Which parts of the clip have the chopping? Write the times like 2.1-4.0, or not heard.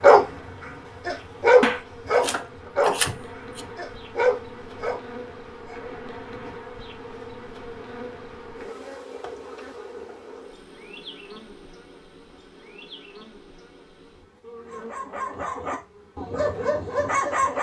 1.6-3.6.